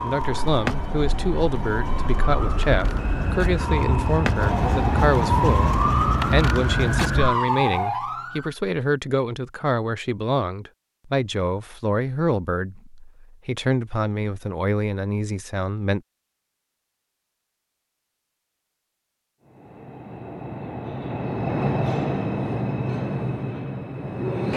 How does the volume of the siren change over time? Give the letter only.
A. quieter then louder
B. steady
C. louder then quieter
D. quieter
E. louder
E.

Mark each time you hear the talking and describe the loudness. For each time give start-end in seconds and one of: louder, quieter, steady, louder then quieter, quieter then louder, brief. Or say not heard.
0.0-16.0 steady.